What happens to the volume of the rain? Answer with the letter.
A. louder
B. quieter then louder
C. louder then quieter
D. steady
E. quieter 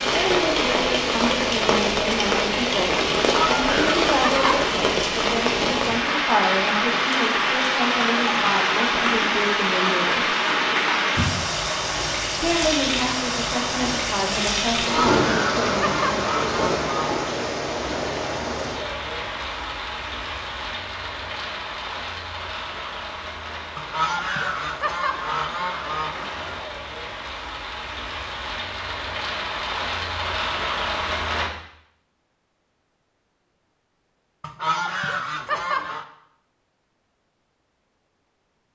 E.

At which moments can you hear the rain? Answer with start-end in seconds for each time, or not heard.
0.0-31.5.